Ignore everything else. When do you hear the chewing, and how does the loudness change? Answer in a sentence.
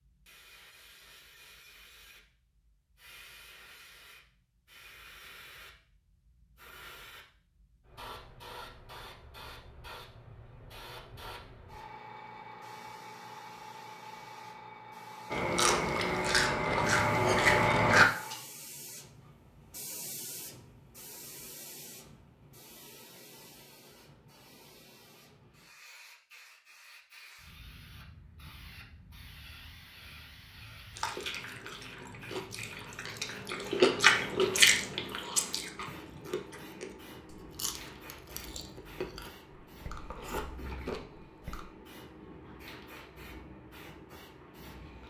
The chewing can be heard briefly from 15.3 to 18.1 s; and from 30.9 to 41.6 s, getting louder then quieter.